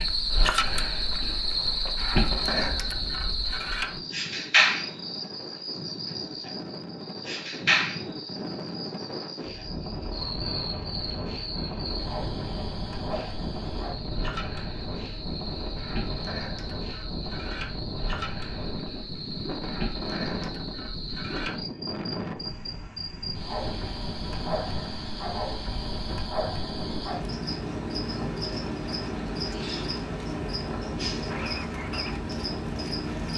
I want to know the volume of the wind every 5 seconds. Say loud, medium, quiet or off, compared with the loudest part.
medium, loud, loud, loud, loud, loud, loud.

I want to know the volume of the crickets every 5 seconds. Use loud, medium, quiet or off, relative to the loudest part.
loud, medium, medium, medium, medium, medium, medium.